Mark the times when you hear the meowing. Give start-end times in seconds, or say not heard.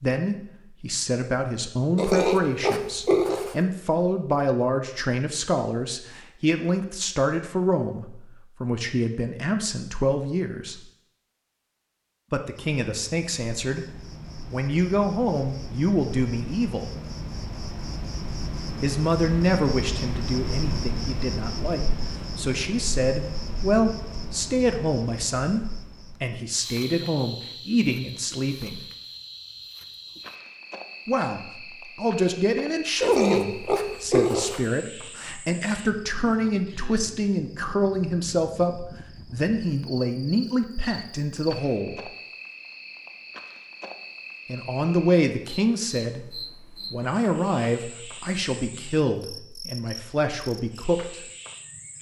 not heard.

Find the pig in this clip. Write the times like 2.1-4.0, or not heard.
1.9-3.5, 33.0-34.6.